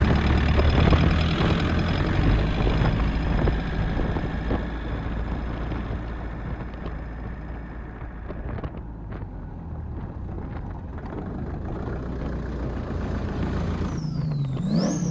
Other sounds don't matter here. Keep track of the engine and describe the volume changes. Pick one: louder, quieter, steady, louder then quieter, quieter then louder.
quieter then louder.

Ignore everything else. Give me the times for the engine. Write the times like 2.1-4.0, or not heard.
0.0-15.0.